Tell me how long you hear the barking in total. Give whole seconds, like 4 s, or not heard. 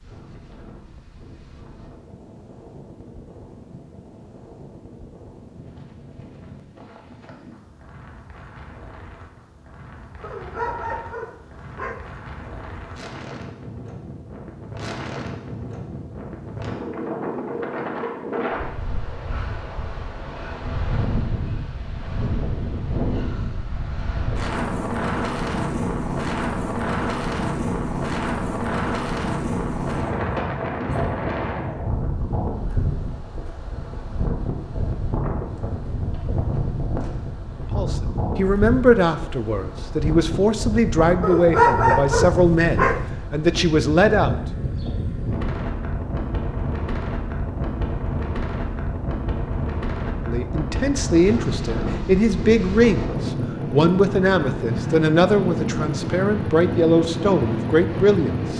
4 s.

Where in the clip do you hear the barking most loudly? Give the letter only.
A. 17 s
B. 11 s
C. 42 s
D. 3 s
C.